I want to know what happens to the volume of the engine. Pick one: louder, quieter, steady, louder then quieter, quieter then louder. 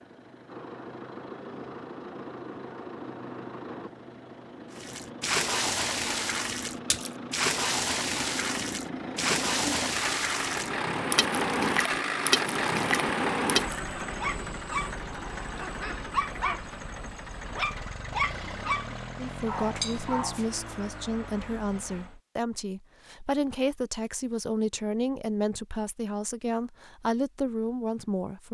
louder then quieter.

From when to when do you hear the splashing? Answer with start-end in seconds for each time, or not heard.
4.8-13.8.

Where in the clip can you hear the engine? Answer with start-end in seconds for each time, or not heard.
0.0-22.2.